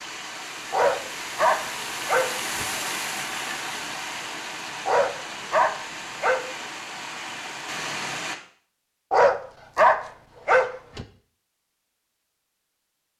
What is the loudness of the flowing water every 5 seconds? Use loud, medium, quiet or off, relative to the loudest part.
loud, loud, off.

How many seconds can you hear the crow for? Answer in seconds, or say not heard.
not heard.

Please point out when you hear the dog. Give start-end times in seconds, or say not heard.
0.7-2.6, 4.8-6.4, 9.1-11.1.